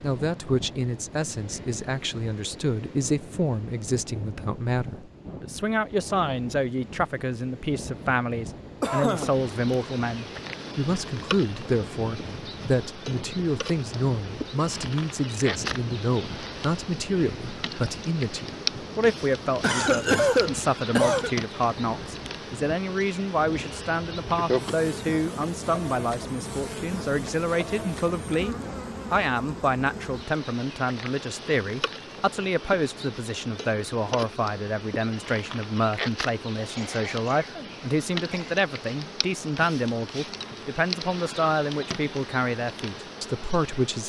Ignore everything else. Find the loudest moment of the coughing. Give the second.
20 s.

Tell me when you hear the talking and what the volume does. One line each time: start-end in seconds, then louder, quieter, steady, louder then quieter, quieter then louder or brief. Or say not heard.
0.0-44.0 steady.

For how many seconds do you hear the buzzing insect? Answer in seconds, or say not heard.
35 s.